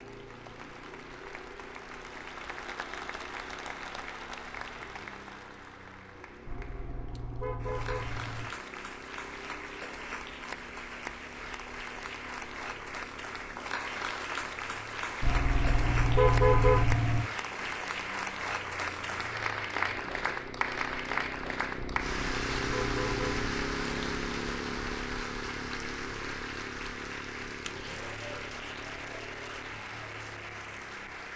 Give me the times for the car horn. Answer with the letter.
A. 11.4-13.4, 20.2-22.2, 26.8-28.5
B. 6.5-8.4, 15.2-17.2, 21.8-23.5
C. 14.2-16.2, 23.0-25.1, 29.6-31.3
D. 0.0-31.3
B.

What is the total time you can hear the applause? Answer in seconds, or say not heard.
31 s.